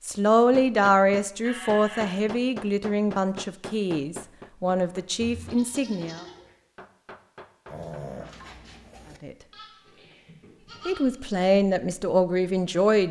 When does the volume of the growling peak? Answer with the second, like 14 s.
8 s.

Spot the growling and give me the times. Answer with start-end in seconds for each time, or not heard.
7.7-9.2.